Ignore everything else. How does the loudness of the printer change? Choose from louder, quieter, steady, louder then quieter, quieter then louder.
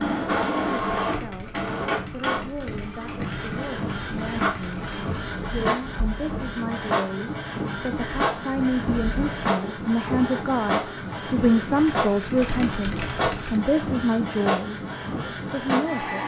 steady.